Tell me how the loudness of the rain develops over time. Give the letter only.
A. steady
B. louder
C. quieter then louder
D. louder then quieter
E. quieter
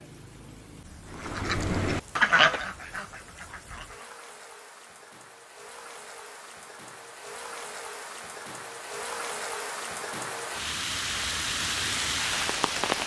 B.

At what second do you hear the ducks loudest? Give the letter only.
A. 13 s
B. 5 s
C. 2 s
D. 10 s
C.